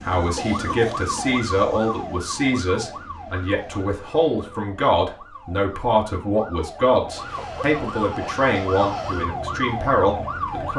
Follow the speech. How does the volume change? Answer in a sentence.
The volume of the speech stays about the same.